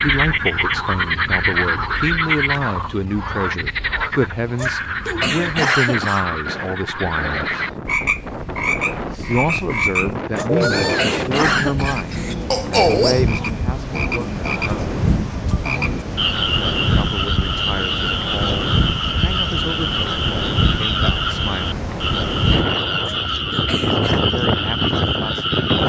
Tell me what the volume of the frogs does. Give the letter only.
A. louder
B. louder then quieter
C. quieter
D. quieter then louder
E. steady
E.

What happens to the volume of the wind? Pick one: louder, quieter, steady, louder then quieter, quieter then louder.
louder.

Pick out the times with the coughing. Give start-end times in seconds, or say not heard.
4.5-6.2, 10.3-12.3, 23.1-24.2.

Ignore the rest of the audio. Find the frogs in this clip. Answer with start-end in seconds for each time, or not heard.
0.0-25.8.